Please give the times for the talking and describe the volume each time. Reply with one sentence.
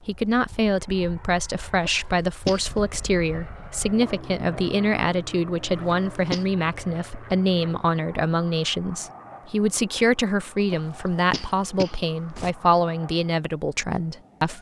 The talking can be heard from 0.1 to 14.5 s, at a steady volume.